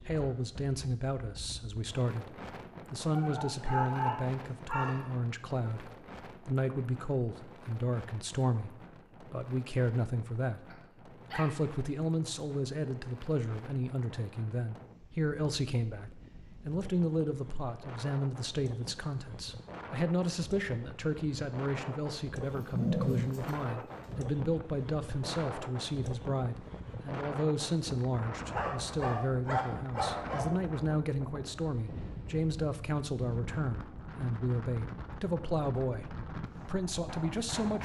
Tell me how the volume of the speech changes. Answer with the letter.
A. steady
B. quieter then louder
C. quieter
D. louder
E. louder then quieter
A.